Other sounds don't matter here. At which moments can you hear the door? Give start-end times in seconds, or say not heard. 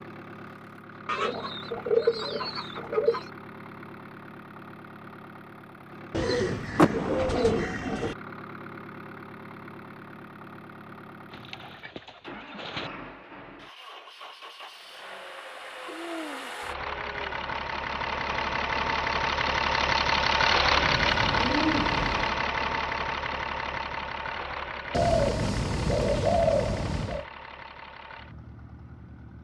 6.8-7.5.